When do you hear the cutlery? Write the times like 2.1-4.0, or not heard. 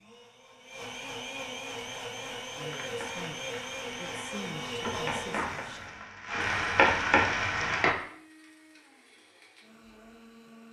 not heard.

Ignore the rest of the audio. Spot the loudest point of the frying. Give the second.
7 s.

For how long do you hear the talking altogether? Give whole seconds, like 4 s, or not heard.
3 s.